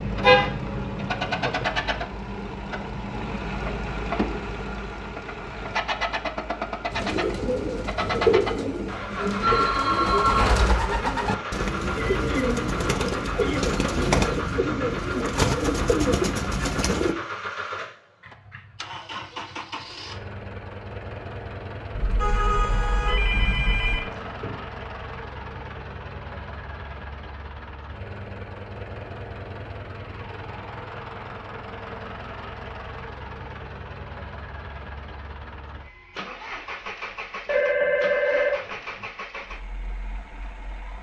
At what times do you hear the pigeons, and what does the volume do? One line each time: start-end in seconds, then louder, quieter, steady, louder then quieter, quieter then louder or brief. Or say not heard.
6.9-17.1 steady.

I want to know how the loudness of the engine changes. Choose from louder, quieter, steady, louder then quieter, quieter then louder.
quieter.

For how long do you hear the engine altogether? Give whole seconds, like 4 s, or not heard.
41 s.